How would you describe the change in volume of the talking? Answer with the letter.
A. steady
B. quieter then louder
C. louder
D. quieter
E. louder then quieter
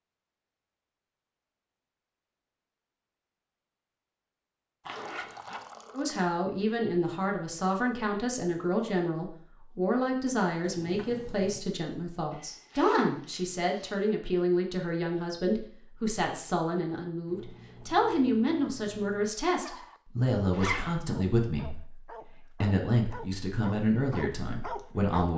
A.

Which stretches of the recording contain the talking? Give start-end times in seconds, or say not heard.
6.0-25.3.